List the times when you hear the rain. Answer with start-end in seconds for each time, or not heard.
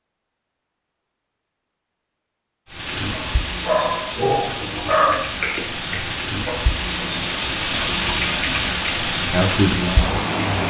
2.6-10.6.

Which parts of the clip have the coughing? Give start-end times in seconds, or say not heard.
4.2-5.2.